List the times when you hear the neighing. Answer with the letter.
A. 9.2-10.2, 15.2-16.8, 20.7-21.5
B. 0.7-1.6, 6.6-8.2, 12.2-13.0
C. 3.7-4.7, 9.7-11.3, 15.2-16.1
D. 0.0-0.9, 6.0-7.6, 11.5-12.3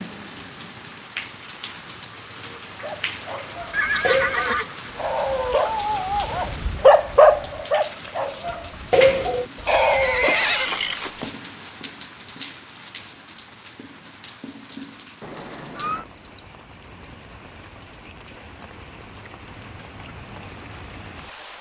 C.